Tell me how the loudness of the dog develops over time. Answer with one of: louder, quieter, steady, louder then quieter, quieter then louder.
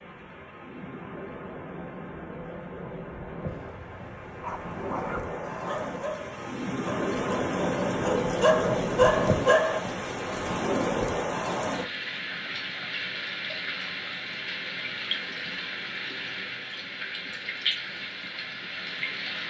louder.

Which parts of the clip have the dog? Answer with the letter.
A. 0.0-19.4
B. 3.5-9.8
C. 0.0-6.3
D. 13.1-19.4
B.